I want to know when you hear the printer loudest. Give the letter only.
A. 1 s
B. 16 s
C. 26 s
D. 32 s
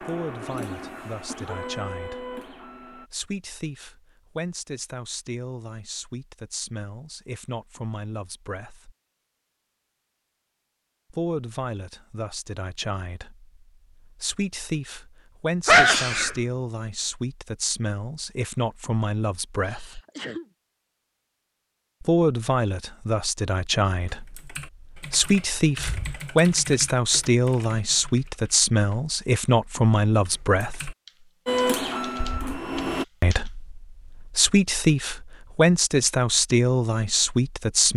D.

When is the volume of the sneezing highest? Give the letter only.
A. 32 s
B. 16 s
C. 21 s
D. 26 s
B.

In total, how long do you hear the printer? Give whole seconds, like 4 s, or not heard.
5 s.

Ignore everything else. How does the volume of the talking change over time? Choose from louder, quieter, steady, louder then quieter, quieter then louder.
louder.